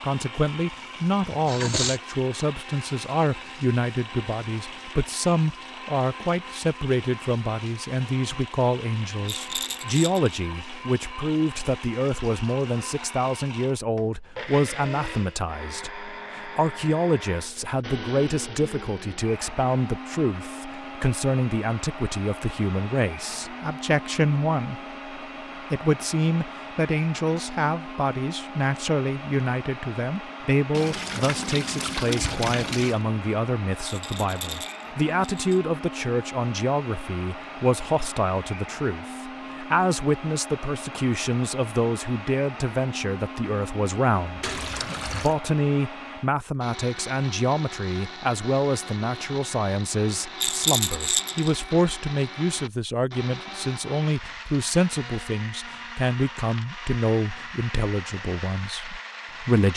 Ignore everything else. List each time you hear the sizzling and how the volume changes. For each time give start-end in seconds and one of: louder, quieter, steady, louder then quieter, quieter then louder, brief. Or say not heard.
not heard.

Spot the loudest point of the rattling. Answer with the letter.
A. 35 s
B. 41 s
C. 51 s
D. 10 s
C.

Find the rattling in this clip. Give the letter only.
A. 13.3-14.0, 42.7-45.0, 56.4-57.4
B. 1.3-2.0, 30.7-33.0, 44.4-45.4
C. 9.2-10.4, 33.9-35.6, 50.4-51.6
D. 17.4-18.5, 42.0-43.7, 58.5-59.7
C.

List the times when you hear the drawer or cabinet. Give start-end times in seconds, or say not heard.
not heard.